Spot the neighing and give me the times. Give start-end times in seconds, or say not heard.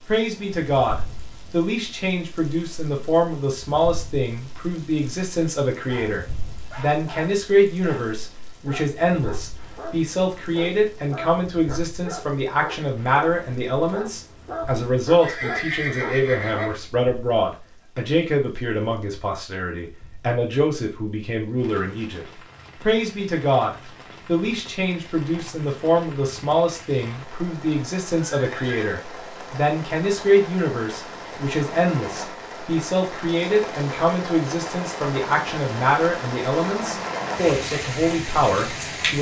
15.2-16.8, 28.2-29.0.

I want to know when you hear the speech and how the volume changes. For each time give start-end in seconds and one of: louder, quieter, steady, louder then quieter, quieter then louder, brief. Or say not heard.
0.1-39.1 steady.